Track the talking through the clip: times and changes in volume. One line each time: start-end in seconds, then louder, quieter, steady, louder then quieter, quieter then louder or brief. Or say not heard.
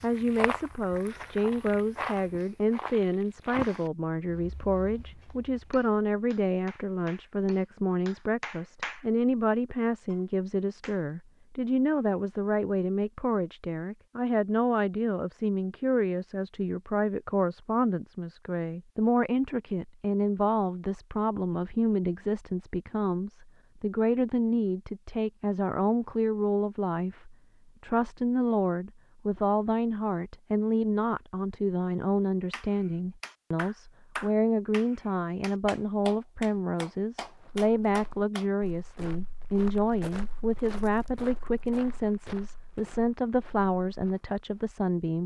0.0-45.2 steady.